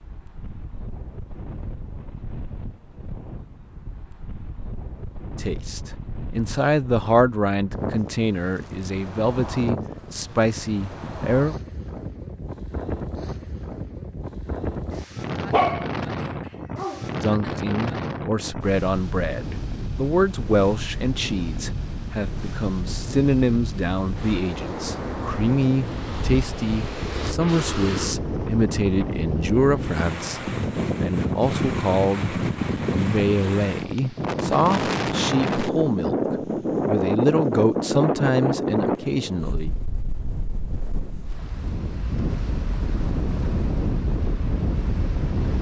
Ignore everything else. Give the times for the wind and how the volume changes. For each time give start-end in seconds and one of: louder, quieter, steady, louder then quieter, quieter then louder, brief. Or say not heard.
0.0-45.5 louder.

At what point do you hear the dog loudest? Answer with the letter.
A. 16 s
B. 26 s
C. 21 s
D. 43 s
A.